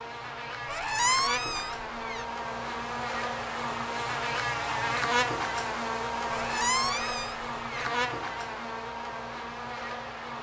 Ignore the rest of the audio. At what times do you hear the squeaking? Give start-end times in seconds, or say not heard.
0.7-2.2, 6.3-7.9.